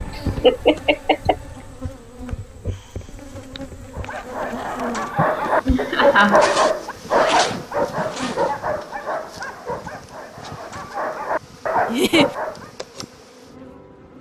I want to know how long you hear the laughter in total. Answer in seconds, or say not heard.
3 s.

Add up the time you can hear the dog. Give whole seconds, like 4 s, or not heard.
9 s.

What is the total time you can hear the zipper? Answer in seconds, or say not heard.
2 s.